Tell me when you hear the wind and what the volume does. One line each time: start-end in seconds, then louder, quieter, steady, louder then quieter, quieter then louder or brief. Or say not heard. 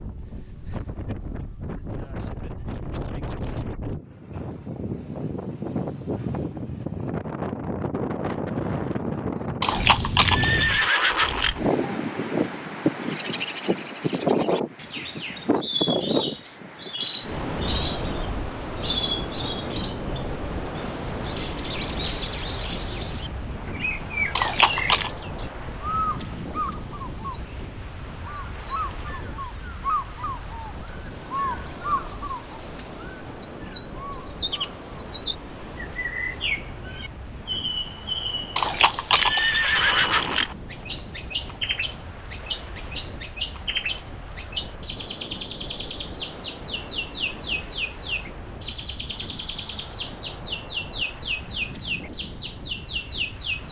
0.0-53.6 quieter.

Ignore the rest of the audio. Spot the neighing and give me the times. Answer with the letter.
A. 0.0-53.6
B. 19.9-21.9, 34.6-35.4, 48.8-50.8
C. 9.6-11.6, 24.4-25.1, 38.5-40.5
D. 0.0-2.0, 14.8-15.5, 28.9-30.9
C.